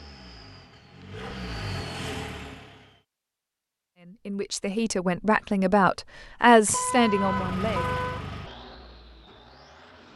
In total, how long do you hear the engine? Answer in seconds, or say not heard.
6 s.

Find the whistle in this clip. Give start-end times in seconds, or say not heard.
not heard.